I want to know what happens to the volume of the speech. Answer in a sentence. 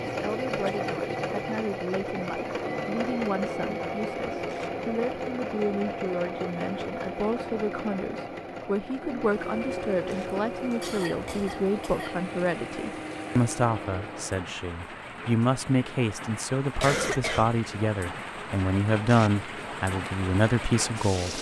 The volume of the speech goes up.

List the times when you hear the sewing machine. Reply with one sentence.
The sewing machine can be heard from 0.0 to 14.4 s.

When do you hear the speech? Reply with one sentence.
The speech can be heard from 0.1 to 21.3 s.